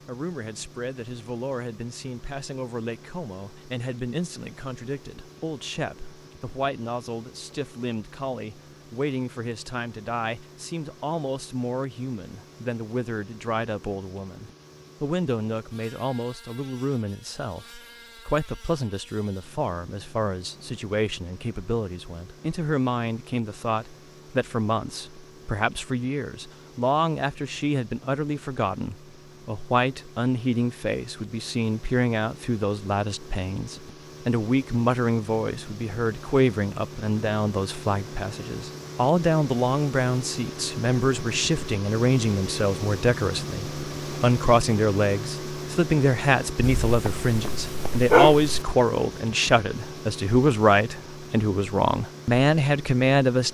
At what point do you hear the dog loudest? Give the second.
48 s.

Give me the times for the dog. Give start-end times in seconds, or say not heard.
46.6-48.6.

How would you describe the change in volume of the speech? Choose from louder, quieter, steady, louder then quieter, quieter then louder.
louder.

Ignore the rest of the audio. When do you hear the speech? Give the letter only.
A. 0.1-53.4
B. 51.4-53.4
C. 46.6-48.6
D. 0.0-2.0
A.